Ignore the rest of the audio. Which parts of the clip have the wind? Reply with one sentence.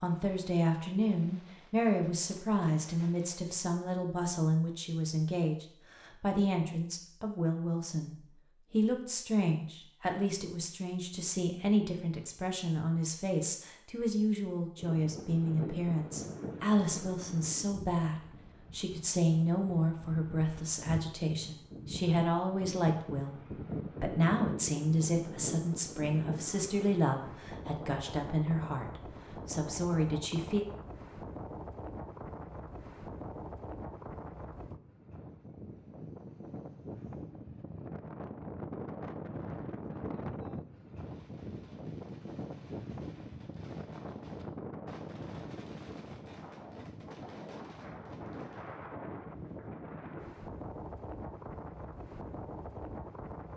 You can hear the wind from 14.8 to 53.5 s.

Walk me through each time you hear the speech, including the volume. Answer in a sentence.
You can hear the speech from 0.0 to 23.4 s, at a steady volume; and from 24.0 to 30.6 s, at a steady volume.